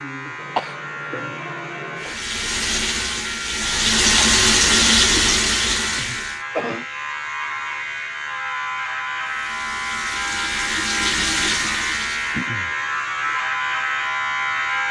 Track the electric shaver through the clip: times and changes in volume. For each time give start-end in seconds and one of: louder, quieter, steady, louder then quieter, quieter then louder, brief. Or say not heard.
0.0-14.8 louder.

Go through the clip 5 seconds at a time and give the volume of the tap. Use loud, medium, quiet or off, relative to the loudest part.
loud, loud, medium.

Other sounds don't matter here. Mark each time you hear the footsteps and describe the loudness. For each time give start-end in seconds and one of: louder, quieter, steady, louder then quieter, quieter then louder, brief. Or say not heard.
not heard.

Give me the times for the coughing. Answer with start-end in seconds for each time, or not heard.
0.3-2.2, 6.0-6.8, 12.3-12.8.